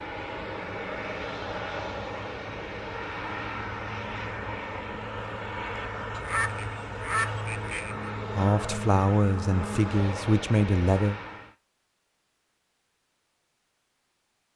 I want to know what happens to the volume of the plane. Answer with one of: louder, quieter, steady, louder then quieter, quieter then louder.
steady.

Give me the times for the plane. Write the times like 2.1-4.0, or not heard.
0.0-11.6.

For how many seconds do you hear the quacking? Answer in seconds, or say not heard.
2 s.